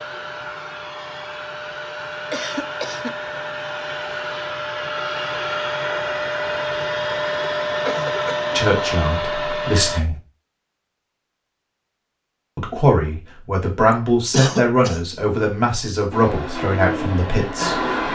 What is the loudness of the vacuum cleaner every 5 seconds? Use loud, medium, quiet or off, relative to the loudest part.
medium, loud, off, loud.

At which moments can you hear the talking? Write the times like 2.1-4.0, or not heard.
8.6-10.2, 12.6-17.9.